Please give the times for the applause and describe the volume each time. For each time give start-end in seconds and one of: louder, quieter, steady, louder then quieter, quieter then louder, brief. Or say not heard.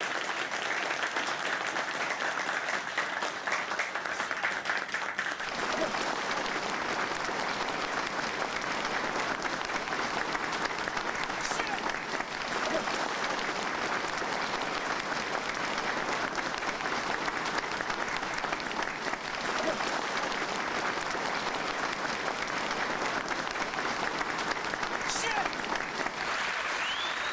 0.0-27.2 steady.